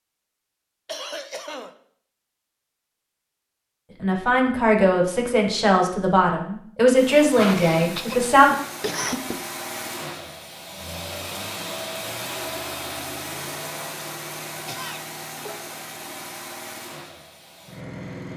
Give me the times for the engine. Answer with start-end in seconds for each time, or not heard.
6.9-18.3.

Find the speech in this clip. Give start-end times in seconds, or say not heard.
4.0-8.5.